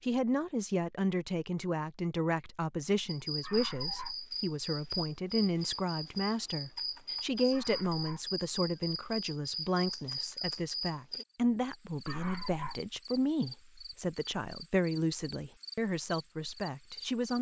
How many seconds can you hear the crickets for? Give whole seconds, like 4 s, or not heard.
14 s.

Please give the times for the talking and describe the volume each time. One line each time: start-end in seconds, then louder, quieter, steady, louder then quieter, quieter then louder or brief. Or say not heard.
0.0-17.3 steady.